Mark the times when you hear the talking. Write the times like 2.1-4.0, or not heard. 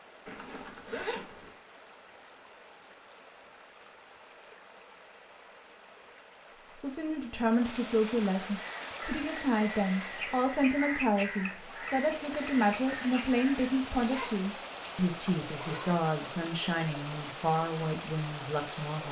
6.8-19.0.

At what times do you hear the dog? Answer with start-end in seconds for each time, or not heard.
not heard.